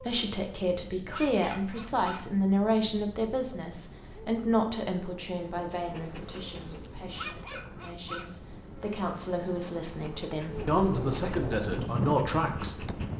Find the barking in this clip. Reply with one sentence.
You can hear the barking from 0.9 to 2.4 s and from 7.0 to 8.5 s.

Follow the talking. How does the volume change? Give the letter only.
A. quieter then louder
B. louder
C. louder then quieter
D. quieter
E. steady
A.